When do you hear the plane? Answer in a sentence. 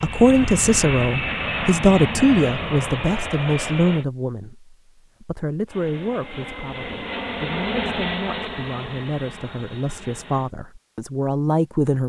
You can hear the plane from 0.0 to 4.0 s and from 5.7 to 10.5 s.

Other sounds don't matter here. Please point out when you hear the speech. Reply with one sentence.
The speech can be heard from 0.0 to 12.0 s.